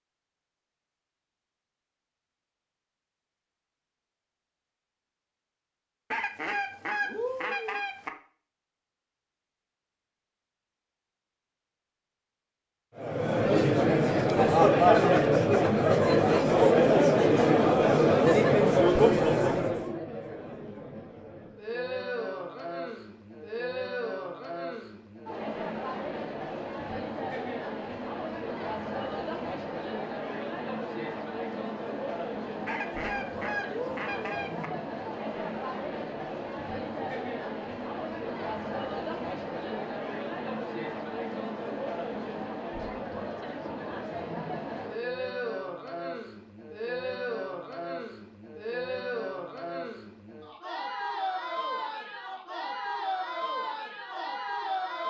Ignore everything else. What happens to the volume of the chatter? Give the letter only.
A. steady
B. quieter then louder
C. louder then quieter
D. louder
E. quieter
E.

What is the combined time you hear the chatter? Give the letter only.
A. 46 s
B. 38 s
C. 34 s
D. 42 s
D.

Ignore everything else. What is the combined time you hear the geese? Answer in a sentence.
The geese can be heard for 4 seconds in total.